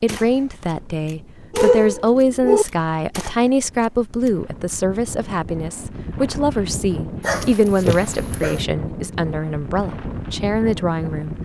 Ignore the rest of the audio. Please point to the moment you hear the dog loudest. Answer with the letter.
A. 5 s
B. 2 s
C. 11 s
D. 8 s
B.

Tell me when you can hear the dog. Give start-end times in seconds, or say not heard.
1.5-2.6, 7.2-8.7.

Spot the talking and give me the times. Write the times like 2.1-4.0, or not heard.
0.0-11.3.